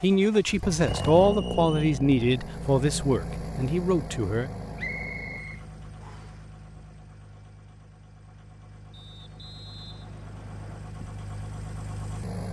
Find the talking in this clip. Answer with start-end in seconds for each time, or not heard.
0.0-4.5.